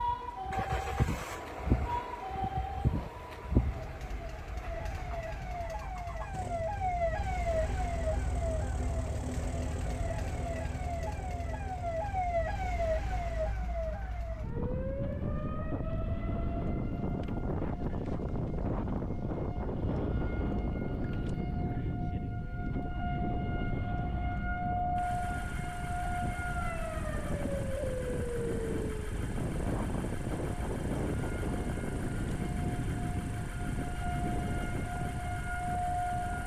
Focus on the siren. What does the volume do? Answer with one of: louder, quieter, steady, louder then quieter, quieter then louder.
steady.